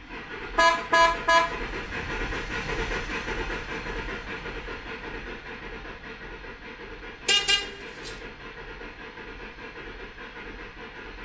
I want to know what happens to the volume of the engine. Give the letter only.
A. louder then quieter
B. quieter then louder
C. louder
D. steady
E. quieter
E.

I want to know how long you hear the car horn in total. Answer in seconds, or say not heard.
3 s.